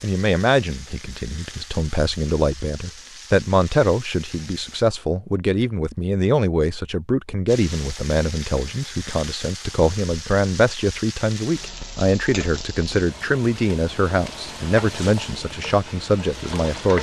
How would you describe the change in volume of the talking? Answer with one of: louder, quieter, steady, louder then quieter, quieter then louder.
steady.